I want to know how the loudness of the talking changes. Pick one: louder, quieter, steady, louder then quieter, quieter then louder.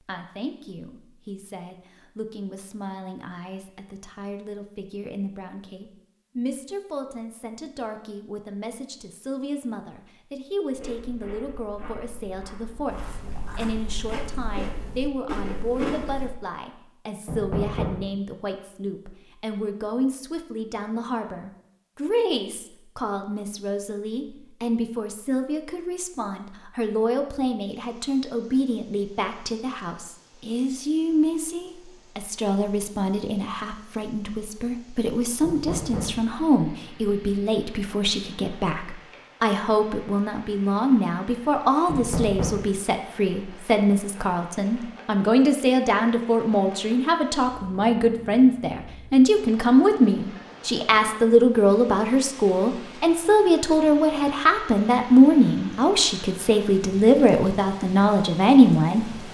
louder.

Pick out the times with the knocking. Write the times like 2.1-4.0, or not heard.
17.2-18.1, 35.4-36.2, 41.9-42.6.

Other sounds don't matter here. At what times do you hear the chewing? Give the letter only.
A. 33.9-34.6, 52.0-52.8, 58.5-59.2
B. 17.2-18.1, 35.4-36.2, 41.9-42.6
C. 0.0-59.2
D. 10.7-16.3
D.